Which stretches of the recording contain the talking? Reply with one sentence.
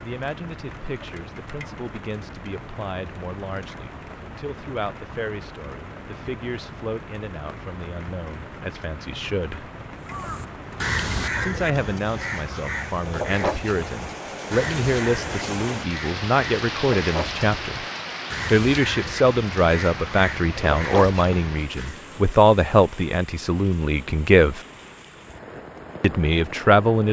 You can hear the talking from 0.0 to 9.7 s, from 11.4 to 17.9 s, from 18.5 to 24.6 s and from 26.0 to 27.0 s.